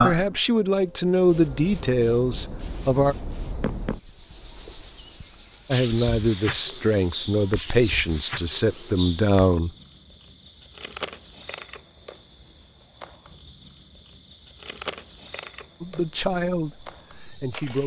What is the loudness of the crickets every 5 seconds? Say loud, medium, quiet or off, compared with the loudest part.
loud, loud, medium, medium.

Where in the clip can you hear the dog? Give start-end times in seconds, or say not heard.
not heard.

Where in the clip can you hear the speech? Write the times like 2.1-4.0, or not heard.
0.0-3.1, 5.7-9.7, 15.8-17.8.